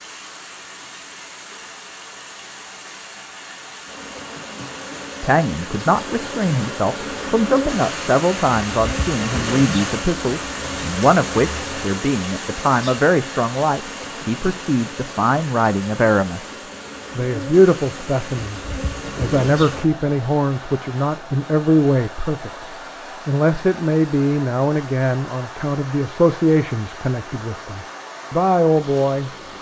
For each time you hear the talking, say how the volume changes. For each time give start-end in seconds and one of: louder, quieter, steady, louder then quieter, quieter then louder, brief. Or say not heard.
5.2-29.3 steady.